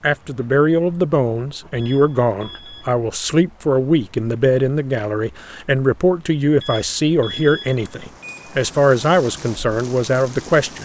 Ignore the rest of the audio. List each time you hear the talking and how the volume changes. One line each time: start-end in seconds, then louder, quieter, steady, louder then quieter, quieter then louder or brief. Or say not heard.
0.0-10.8 steady.